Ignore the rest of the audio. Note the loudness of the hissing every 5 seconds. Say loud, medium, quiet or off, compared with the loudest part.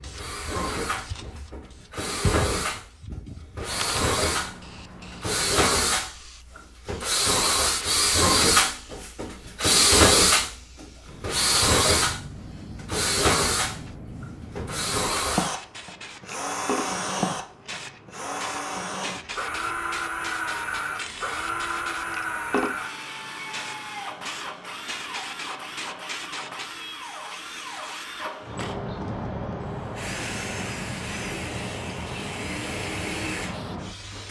loud, medium, medium, loud, loud, loud, loud.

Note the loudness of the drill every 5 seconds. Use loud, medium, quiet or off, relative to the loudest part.
medium, loud, loud, medium, medium, quiet, quiet.